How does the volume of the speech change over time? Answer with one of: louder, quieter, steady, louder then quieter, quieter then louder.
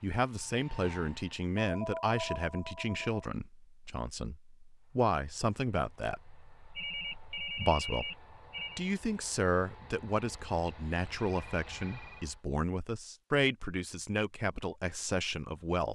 steady.